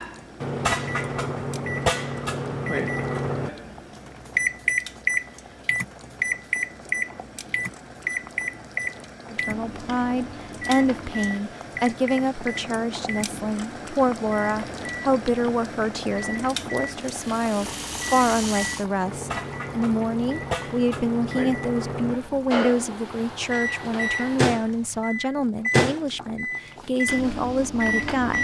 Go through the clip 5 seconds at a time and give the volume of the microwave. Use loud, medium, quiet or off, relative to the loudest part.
loud, loud, medium, medium, loud, loud.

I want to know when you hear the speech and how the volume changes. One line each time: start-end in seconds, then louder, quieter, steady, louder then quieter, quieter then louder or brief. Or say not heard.
9.2-28.4 steady.